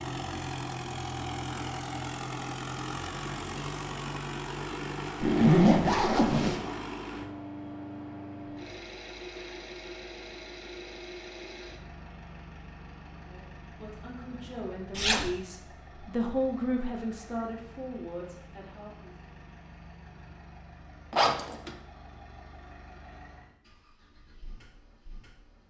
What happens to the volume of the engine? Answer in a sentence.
The volume of the engine goes down.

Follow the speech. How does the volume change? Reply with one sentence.
The volume of the speech goes up, then down.